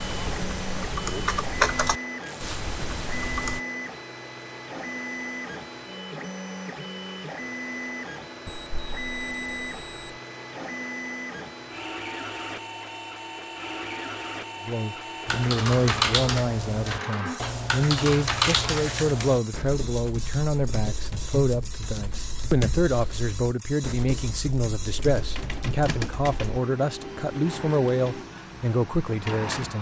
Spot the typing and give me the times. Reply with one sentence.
You can hear the typing from 0.0 to 3.6 s and from 15.2 to 26.6 s.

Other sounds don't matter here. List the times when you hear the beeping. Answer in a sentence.
The beeping can be heard from 8.4 to 10.2 s.